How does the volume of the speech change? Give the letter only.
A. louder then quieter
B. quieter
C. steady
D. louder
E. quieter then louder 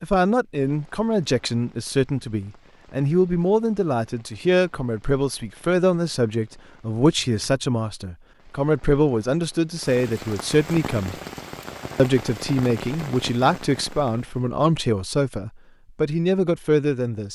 C.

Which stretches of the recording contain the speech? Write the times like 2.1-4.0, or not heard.
0.0-11.2, 11.9-17.2.